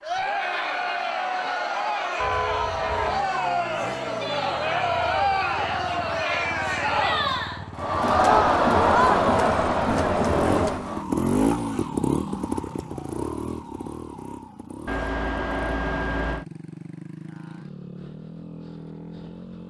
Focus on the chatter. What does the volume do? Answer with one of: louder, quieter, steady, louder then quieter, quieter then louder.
louder.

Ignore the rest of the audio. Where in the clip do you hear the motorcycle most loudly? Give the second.
12 s.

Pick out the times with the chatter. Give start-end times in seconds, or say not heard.
0.0-11.1.